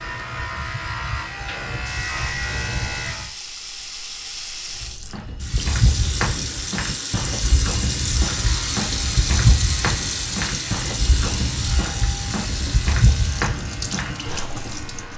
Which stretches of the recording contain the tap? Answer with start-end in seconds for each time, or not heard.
1.8-15.1.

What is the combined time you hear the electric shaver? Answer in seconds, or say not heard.
10 s.